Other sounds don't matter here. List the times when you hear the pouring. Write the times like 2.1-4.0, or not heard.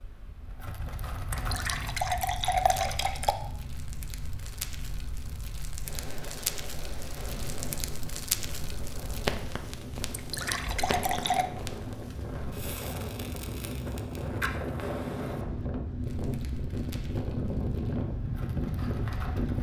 1.3-3.4, 10.1-11.4.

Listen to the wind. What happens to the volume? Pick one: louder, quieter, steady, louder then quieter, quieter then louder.
louder.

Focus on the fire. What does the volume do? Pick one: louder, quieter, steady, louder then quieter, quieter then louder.
louder then quieter.